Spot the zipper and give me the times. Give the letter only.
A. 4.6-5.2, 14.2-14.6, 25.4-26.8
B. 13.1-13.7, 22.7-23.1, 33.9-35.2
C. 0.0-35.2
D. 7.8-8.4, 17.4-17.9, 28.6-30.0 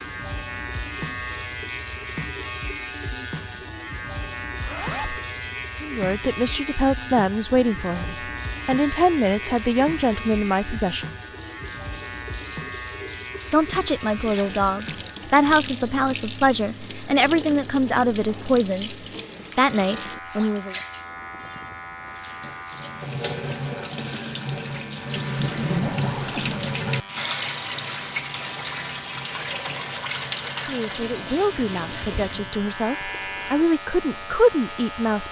A.